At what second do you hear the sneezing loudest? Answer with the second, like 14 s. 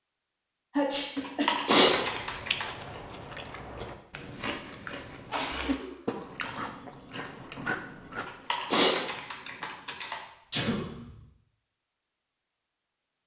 1 s.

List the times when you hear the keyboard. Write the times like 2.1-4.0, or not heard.
1.1-2.6, 8.2-10.2.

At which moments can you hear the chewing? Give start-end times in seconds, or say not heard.
1.9-10.0.